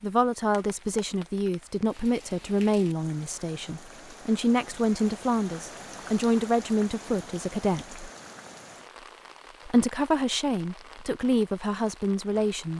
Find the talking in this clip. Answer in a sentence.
You can hear the talking from 0.0 to 8.1 s and from 9.7 to 12.7 s.